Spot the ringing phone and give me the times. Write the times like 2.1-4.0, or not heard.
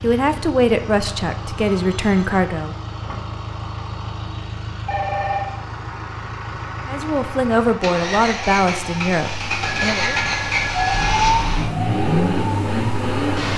1.6-2.4, 4.8-5.5, 9.6-11.1.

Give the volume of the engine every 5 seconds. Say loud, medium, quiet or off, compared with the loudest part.
medium, medium, loud.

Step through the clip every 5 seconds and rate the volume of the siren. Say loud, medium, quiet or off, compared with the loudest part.
off, quiet, loud.